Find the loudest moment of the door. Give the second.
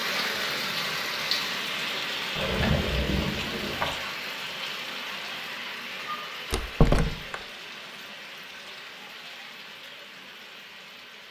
7 s.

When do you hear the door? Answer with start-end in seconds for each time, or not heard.
2.4-4.0, 6.5-7.3.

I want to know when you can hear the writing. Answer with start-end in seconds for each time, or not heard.
not heard.